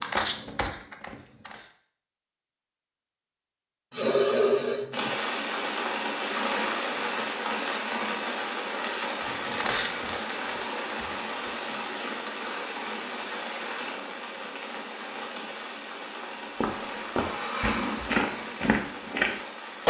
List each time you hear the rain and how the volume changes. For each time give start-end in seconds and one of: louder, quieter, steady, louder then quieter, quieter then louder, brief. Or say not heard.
4.9-19.8 quieter.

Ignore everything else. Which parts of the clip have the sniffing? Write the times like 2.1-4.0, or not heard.
3.9-5.1, 17.1-18.1.